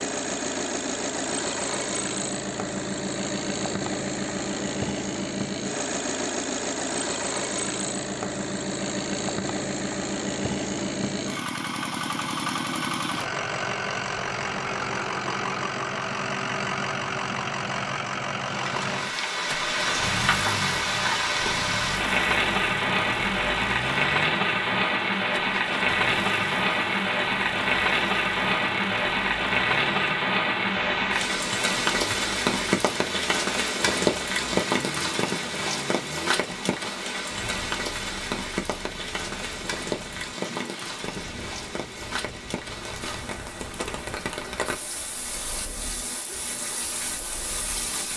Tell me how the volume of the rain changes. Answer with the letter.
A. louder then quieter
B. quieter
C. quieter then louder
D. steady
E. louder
B.